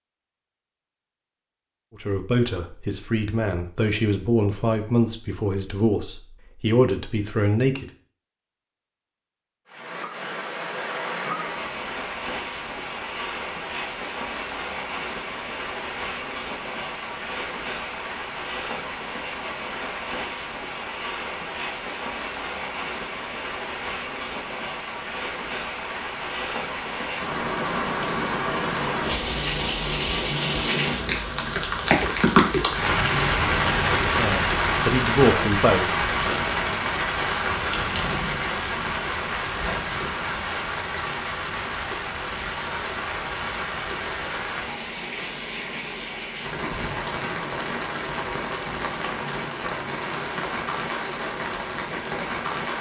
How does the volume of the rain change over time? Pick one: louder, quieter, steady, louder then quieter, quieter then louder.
louder then quieter.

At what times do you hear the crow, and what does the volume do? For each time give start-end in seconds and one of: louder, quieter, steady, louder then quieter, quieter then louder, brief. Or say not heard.
not heard.